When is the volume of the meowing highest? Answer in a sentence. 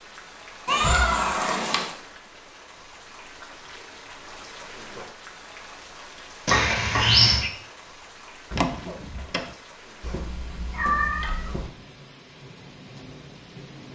The loudest moment of the meowing is at 7 seconds.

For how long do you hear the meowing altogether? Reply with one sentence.
You can hear the meowing for 4 seconds altogether.